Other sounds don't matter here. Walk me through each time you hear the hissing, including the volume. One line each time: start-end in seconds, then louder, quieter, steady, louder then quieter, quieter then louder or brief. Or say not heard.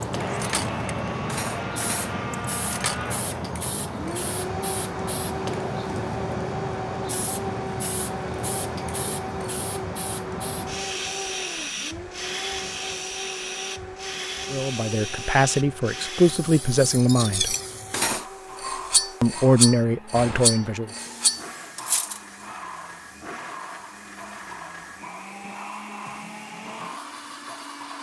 0.0-27.9 quieter.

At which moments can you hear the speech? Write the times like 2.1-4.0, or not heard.
14.5-17.6, 19.2-20.9.